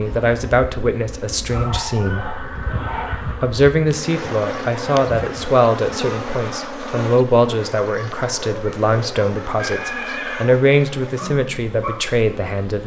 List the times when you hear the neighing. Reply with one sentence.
You can hear the neighing from 1.9 to 3.6 s and from 9.6 to 10.4 s.